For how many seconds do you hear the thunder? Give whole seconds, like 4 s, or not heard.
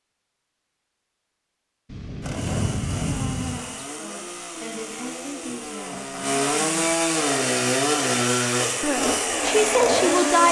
2 s.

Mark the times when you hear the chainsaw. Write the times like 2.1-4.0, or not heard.
2.2-10.4.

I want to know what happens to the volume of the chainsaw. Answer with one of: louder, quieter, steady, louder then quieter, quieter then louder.
louder.